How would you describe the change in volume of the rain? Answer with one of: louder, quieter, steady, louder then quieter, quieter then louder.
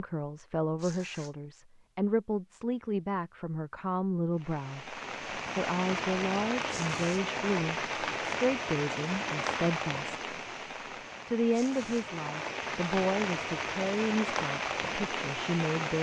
steady.